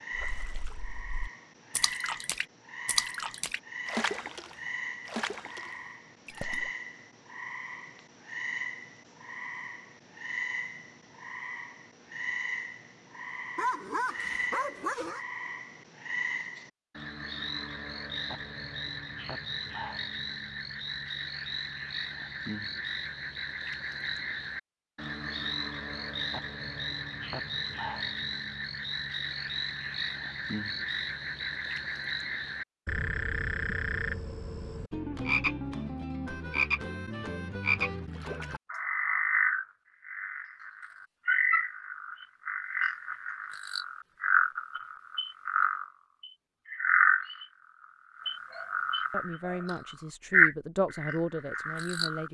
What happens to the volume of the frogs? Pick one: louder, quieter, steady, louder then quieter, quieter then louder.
louder.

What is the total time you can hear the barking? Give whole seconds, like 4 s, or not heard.
3 s.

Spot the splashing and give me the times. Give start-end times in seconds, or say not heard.
0.1-6.7.